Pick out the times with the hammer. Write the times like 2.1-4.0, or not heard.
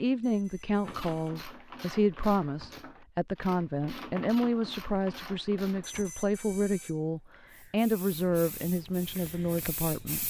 not heard.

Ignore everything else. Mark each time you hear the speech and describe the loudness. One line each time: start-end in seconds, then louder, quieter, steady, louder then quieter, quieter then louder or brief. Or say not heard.
0.0-10.2 steady.